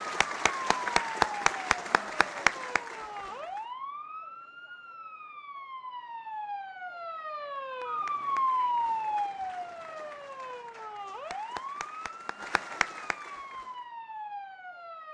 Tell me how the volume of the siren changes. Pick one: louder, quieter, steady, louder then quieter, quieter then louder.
louder then quieter.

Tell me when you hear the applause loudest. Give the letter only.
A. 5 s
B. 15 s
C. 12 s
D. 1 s
D.